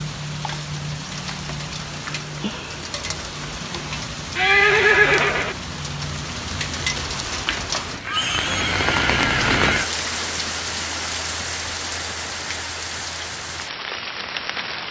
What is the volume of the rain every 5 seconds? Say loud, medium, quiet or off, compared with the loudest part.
medium, loud, loud.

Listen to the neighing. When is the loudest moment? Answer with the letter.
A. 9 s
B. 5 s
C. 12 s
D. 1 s
B.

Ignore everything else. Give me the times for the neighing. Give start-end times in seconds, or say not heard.
4.3-5.5, 8.0-9.9.